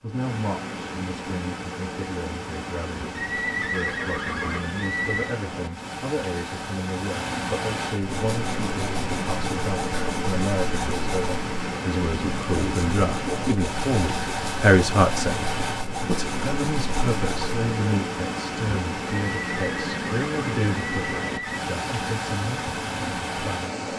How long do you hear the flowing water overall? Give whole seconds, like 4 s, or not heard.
24 s.